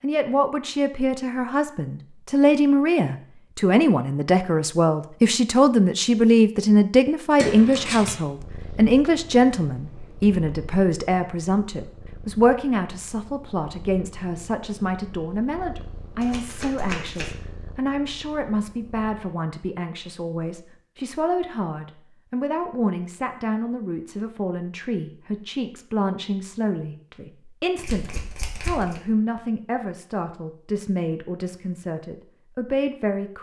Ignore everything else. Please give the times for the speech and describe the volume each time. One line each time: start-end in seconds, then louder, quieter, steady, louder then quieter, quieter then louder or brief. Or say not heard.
0.0-33.3 quieter.